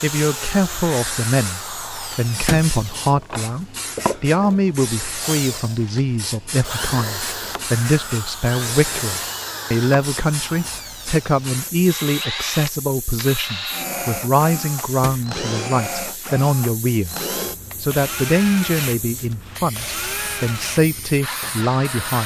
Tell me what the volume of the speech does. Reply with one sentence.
The loudness of the speech stays about the same.